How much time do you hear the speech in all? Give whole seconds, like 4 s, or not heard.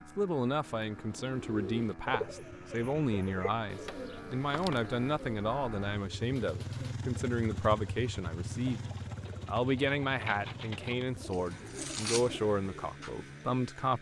13 s.